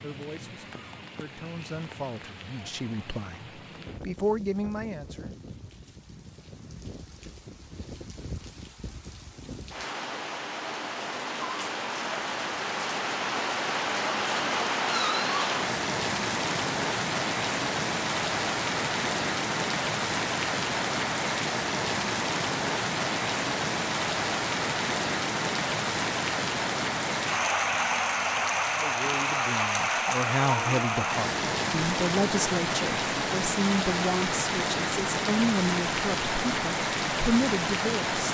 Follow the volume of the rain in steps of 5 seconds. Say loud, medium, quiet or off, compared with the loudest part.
quiet, quiet, loud, loud, loud, loud, loud, loud.